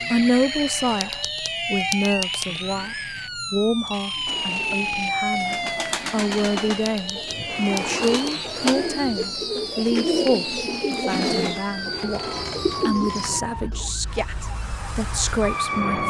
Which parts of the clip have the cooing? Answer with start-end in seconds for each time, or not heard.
4.2-13.9.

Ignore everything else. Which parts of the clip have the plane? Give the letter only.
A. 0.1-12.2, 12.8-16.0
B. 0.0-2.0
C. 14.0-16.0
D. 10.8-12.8
C.